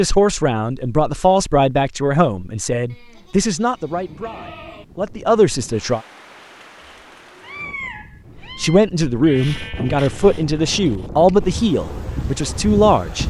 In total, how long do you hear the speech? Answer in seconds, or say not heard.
11 s.